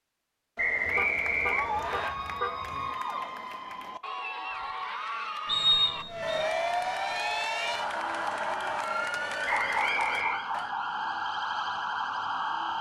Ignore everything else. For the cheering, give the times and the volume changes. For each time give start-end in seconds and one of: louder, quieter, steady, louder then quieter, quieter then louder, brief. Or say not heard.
0.7-10.7 steady.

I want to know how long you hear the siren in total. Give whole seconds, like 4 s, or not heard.
7 s.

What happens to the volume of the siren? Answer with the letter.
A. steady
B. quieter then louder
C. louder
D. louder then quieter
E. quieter
A.